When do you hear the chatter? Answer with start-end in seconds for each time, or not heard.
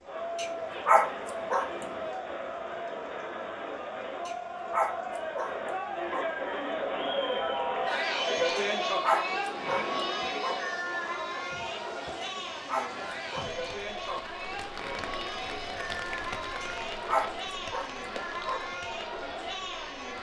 0.0-20.1.